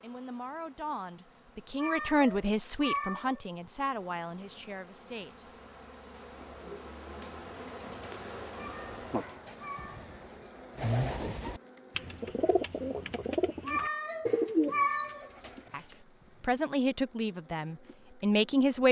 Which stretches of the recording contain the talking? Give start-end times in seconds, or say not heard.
0.0-5.5, 15.7-18.8.